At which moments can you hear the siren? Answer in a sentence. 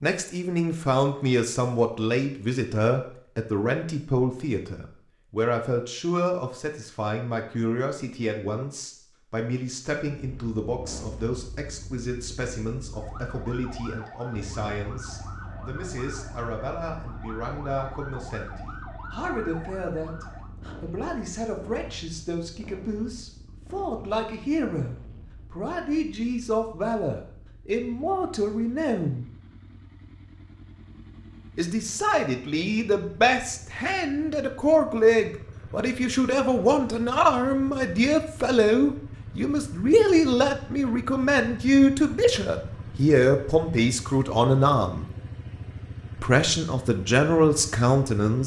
The siren can be heard from 12.9 to 20.5 s.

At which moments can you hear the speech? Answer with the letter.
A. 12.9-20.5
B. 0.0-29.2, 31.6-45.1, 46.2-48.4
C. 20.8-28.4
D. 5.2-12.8
B.